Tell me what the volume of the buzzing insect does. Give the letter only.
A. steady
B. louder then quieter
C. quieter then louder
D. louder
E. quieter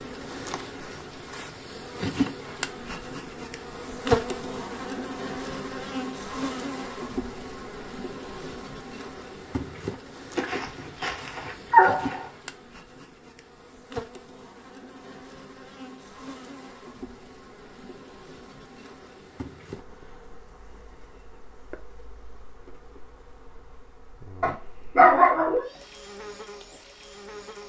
E.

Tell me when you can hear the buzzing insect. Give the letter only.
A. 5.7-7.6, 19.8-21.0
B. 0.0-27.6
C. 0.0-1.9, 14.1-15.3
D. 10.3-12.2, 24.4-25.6
B.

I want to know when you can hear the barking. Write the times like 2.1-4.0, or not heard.
10.3-12.2, 24.4-25.6.